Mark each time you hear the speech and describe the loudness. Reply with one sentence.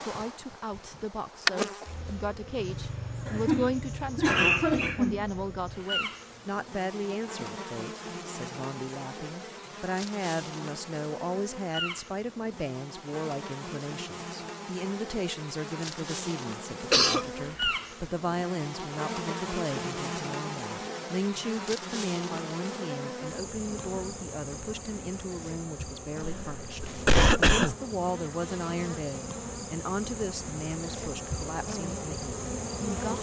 The speech can be heard from 0.0 to 33.1 s, at a steady volume.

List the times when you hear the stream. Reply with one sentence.
The stream can't be heard in this clip.